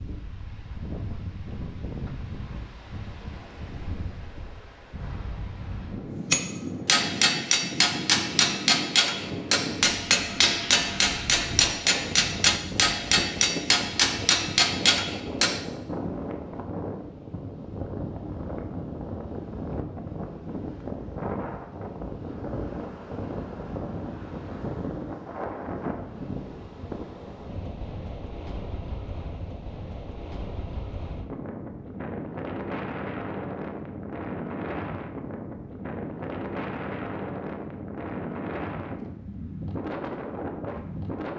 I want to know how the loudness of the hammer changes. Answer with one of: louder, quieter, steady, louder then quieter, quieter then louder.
steady.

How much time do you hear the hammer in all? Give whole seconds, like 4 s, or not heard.
9 s.